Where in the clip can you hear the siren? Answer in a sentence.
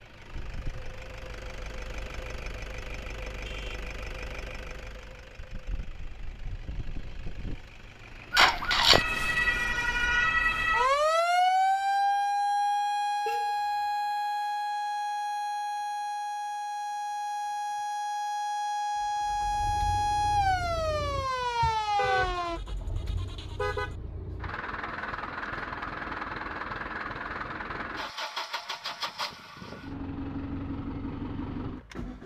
You can hear the siren from 8.3 to 22.6 s.